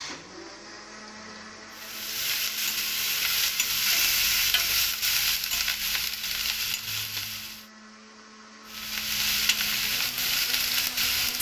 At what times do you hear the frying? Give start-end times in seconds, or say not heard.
1.7-7.7, 8.7-11.3.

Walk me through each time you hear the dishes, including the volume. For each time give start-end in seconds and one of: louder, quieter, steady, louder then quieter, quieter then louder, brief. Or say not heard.
not heard.